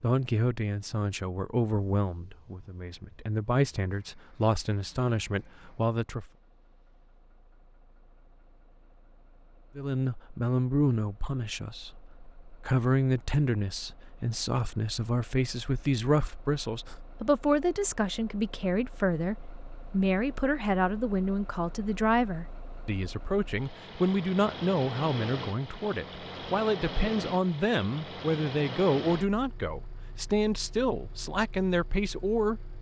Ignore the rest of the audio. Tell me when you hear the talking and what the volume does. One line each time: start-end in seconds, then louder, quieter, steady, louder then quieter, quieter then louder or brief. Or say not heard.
0.0-6.3 steady
9.8-32.7 steady.